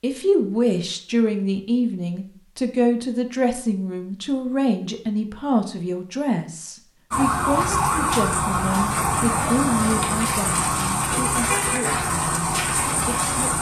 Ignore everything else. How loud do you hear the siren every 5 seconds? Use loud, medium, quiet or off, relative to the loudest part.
off, loud, loud.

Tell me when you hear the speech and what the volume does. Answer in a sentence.
You can hear the speech from 0.0 to 13.5 s, getting quieter.